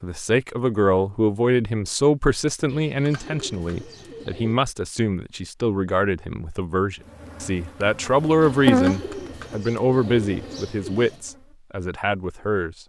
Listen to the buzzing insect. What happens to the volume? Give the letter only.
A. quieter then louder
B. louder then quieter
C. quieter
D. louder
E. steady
B.